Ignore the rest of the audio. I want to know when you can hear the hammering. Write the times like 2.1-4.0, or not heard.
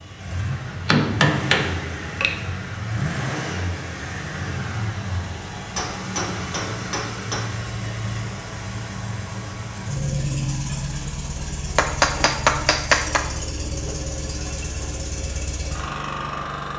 0.7-2.4, 5.8-7.5, 11.8-13.2.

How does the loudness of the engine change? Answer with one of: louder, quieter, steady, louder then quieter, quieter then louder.
steady.